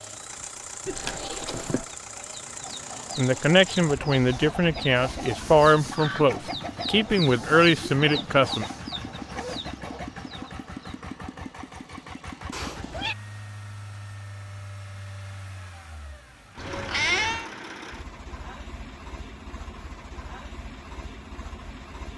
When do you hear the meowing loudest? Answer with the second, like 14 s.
17 s.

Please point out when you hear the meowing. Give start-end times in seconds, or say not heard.
0.8-1.9, 12.5-13.2, 16.6-17.5.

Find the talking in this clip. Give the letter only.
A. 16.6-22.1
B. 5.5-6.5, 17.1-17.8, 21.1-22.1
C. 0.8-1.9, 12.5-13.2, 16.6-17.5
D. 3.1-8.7
D.